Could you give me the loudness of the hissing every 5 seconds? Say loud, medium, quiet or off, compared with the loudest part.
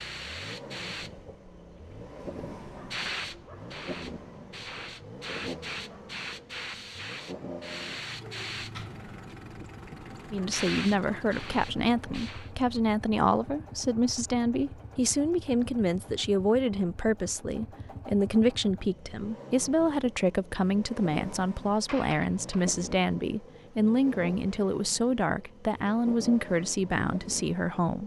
loud, loud, loud, off, off, off.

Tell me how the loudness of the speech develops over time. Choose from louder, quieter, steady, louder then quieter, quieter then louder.
steady.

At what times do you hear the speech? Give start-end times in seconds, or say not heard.
10.3-28.0.